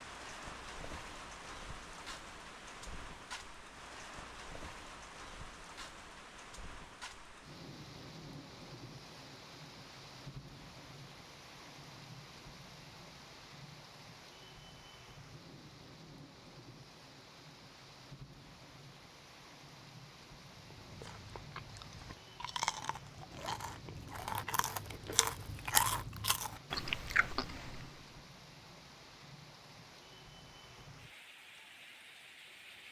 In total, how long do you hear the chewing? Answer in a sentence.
You can hear the chewing for 8 seconds altogether.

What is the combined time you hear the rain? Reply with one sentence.
The rain can be heard for 33 seconds in total.